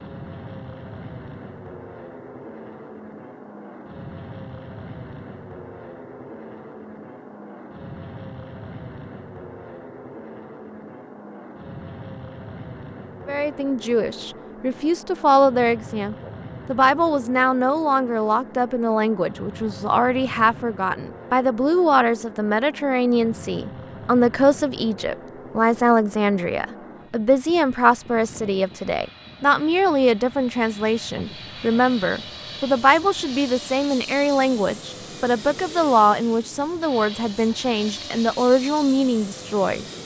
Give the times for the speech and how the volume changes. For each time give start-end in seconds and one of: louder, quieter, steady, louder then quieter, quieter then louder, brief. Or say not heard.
13.2-39.9 steady.